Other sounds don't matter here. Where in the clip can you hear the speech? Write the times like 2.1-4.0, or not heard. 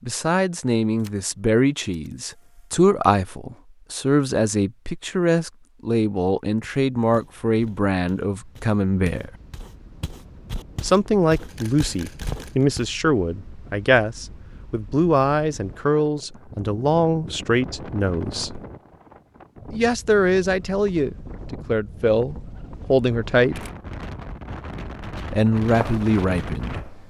0.0-9.3, 10.8-18.6, 19.7-23.6, 25.3-26.8.